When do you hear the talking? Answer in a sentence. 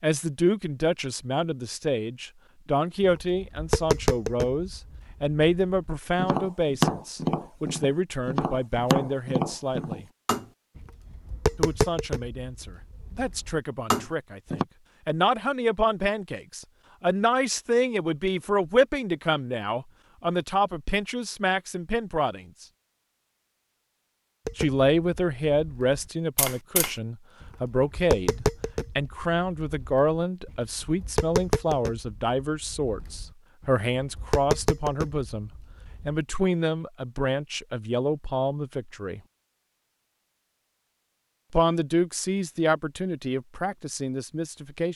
The talking can be heard from 0.0 to 10.1 s, from 11.6 to 22.6 s, from 24.6 to 39.2 s and from 41.5 to 44.9 s.